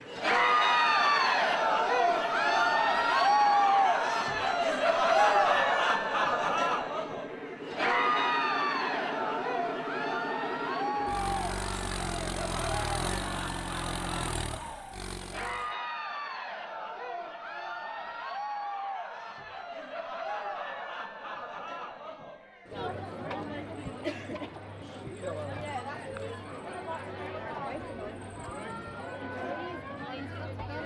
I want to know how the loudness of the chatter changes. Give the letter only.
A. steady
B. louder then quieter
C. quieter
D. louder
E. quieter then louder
C.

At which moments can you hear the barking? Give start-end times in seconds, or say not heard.
not heard.